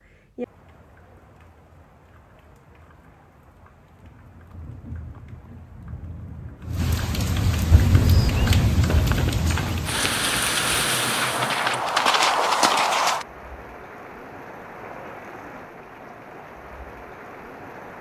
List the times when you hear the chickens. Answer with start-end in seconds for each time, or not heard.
not heard.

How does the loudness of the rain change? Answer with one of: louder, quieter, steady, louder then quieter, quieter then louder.
louder then quieter.